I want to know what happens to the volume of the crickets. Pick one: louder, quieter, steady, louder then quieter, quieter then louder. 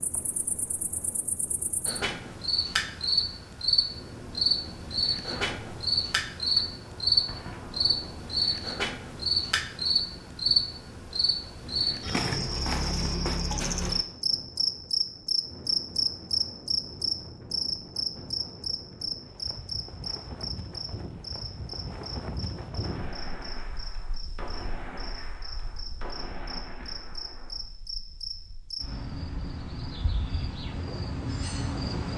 quieter.